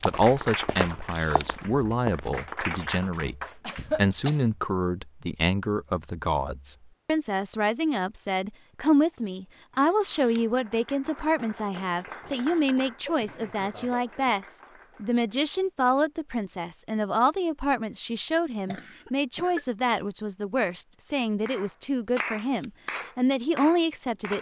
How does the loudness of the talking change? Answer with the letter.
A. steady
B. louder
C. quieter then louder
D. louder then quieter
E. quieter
A.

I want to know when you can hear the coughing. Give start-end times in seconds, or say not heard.
3.6-4.4, 12.2-14.2, 18.6-19.6.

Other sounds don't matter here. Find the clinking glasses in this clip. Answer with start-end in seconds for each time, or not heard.
not heard.